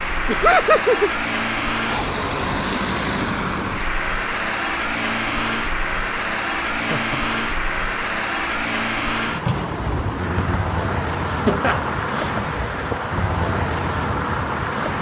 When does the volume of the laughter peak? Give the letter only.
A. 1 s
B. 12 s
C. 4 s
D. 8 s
A.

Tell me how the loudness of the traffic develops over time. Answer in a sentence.
The volume of the traffic stays about the same.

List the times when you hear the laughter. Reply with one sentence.
The laughter can be heard from 0.2 to 1.1 s, from 6.8 to 7.3 s and from 11.2 to 12.3 s.